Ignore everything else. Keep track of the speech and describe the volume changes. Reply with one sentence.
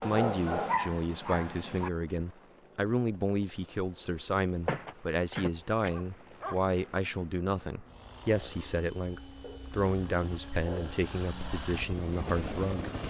The volume of the speech stays about the same.